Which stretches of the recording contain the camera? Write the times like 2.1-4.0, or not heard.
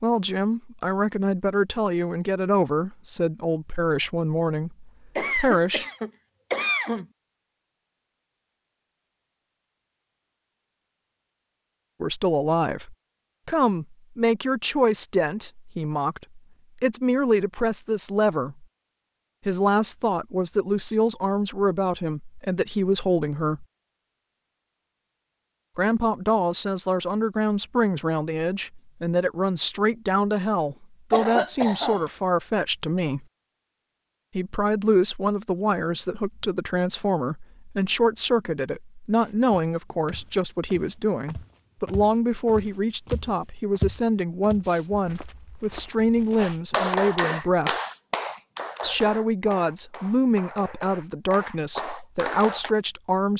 not heard.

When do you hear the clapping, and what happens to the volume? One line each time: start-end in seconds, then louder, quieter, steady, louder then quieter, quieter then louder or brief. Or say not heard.
46.4-52.8 quieter then louder.